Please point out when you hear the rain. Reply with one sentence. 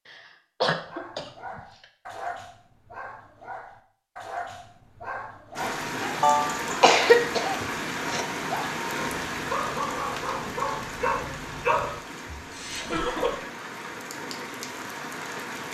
The rain can be heard from 5.5 to 15.6 s.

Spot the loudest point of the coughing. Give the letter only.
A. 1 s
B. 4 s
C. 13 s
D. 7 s
D.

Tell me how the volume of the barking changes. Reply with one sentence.
The volume of the barking goes up.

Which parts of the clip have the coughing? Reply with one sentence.
The coughing can be heard from 0.1 to 1.6 s, from 6.2 to 8.2 s and from 12.3 to 13.4 s.